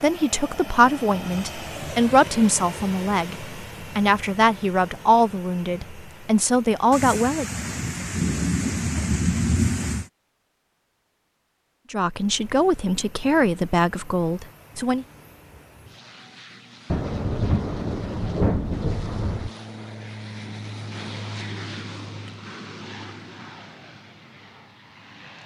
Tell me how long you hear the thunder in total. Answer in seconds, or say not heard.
6 s.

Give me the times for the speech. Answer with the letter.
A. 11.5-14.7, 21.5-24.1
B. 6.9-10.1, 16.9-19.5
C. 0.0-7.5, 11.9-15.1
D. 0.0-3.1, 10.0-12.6
C.